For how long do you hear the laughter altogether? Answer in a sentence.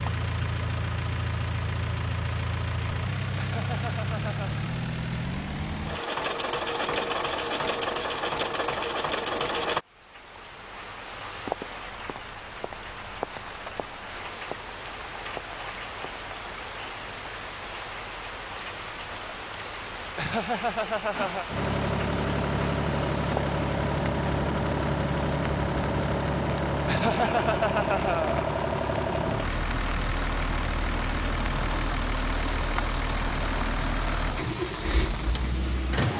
The laughter can be heard for 4 seconds in total.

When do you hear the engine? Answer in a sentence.
You can hear the engine from 0.0 to 9.8 s and from 21.1 to 36.1 s.